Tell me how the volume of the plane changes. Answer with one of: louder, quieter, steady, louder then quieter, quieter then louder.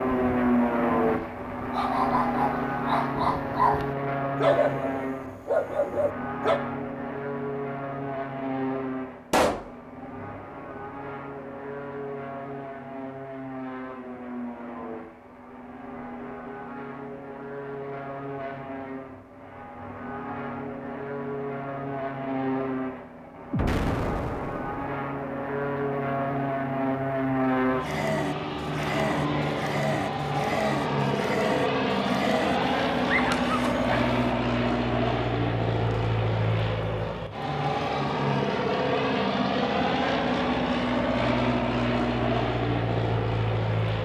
quieter then louder.